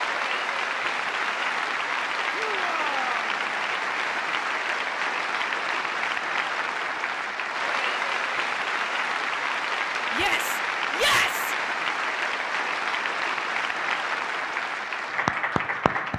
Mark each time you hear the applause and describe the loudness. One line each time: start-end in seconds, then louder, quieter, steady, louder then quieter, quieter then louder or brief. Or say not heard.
0.0-16.1 steady.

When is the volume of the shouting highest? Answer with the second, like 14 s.
11 s.